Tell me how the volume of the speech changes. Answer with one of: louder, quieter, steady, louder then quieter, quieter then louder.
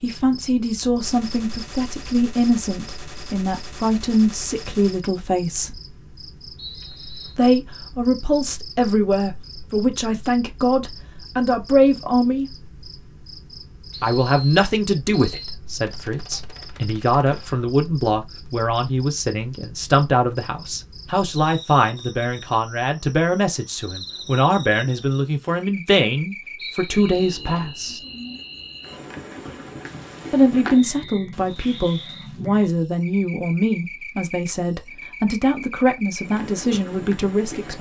steady.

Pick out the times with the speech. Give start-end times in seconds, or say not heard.
0.0-5.8, 7.3-12.6, 14.0-28.0, 30.3-37.7.